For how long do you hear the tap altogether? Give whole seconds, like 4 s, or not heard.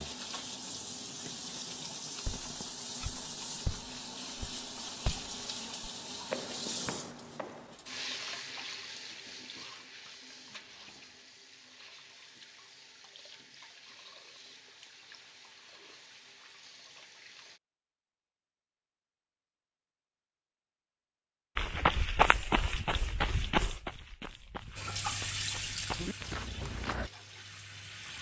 21 s.